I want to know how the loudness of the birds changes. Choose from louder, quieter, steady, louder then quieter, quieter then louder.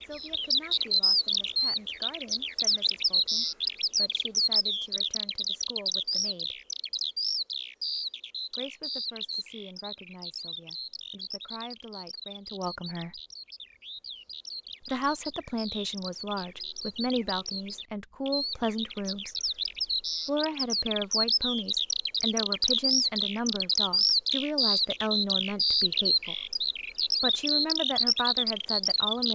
quieter then louder.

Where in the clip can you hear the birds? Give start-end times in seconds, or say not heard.
0.0-29.3.